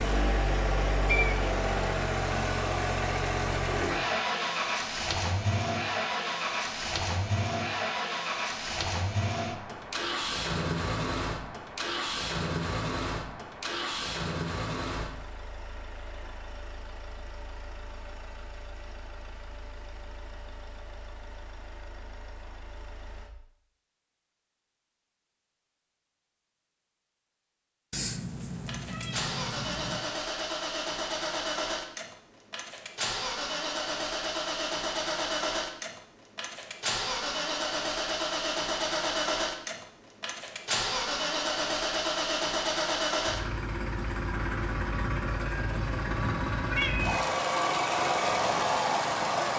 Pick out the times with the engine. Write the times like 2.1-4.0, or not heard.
0.0-23.3, 28.4-49.5.